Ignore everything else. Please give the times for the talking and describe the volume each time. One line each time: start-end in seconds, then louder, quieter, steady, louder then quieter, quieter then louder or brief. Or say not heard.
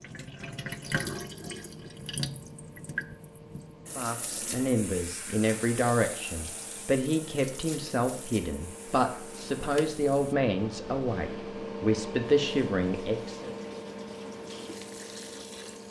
4.0-13.6 steady.